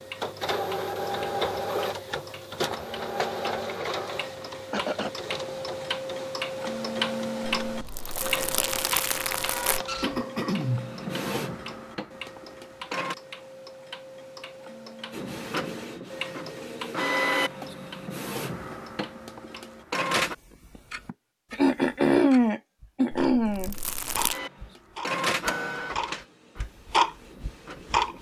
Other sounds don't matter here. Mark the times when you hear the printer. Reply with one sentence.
The printer can be heard from 0.0 to 13.2 s, from 15.1 to 20.4 s and from 24.3 to 28.1 s.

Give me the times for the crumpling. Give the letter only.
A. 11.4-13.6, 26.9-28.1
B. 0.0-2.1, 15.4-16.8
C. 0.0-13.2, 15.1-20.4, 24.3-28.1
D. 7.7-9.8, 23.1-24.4
D.